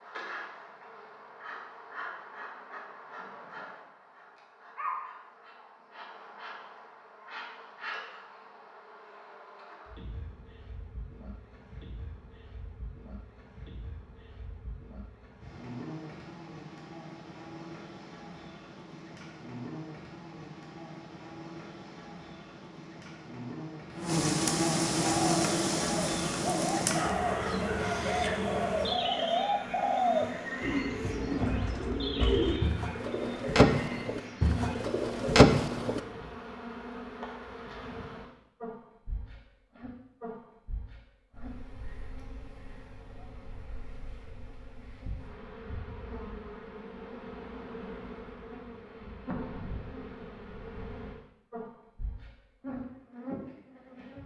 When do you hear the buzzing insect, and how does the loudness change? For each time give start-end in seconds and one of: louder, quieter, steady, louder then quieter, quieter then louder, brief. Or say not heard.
0.0-54.2 louder then quieter.